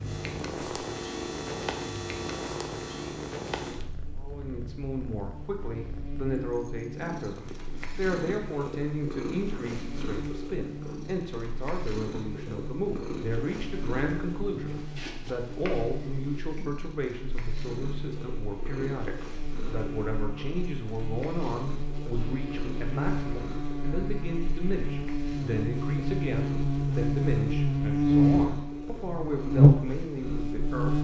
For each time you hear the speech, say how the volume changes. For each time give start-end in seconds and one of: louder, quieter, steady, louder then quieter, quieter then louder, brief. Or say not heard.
4.2-30.9 steady.